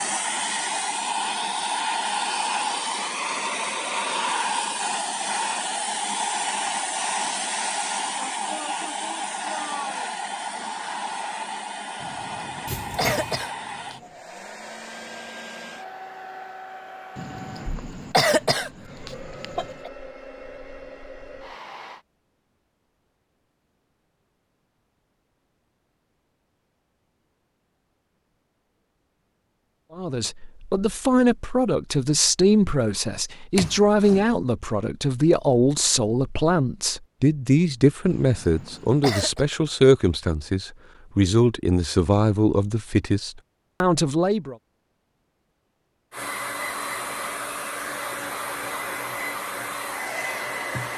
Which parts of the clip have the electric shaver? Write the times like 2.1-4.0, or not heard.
not heard.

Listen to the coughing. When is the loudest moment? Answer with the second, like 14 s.
18 s.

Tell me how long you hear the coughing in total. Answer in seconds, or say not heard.
6 s.